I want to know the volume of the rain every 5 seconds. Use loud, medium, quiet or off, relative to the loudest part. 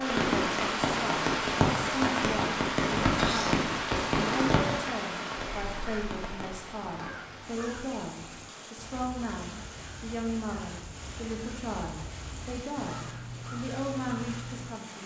loud, quiet, quiet.